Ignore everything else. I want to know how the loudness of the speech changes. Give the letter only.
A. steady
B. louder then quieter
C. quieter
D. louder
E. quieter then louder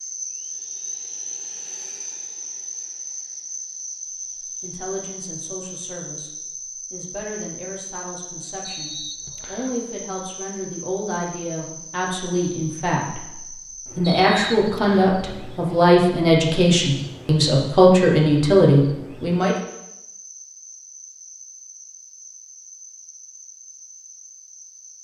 D.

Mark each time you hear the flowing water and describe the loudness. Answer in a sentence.
The flowing water can't be heard in this clip.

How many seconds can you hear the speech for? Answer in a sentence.
You can hear the speech for 15 seconds altogether.